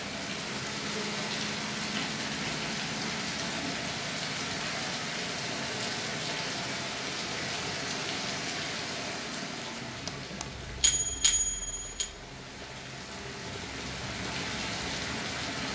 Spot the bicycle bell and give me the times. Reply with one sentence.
The bicycle bell can be heard from 10.1 to 12.1 s.